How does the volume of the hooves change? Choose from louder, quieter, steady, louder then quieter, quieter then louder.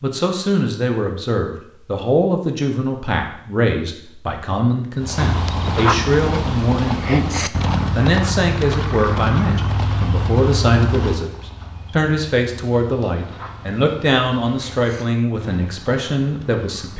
quieter.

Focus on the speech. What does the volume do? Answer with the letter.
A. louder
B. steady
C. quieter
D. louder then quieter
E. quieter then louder
B.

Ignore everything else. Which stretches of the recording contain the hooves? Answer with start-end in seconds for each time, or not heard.
5.0-16.9.